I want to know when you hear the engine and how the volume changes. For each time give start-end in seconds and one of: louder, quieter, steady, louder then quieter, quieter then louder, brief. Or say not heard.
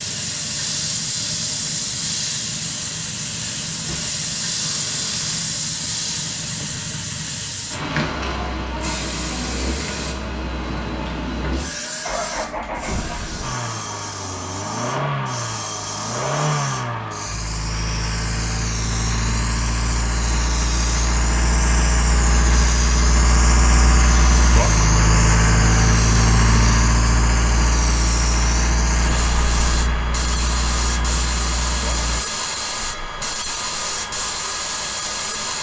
0.0-32.2 louder.